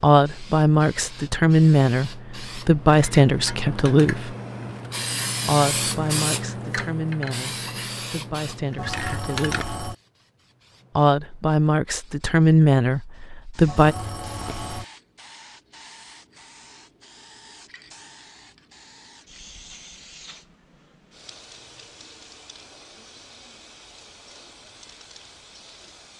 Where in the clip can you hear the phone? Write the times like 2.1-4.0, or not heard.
8.8-9.9, 13.7-14.8.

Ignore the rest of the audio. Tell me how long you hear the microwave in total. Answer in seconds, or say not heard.
not heard.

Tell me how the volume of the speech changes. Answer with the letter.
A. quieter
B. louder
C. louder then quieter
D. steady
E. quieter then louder
E.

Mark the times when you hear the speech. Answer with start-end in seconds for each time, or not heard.
0.0-4.3, 5.5-9.8, 10.9-13.9.